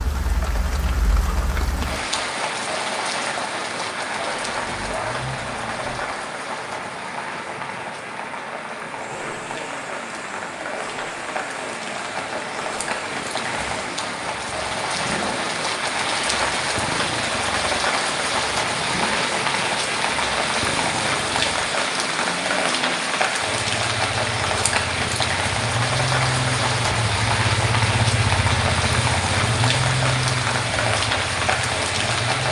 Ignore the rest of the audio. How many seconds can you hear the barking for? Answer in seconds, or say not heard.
2 s.